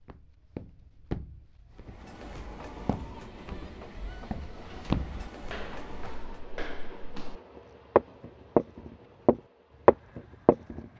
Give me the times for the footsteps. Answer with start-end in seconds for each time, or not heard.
0.0-7.3, 8.0-10.8.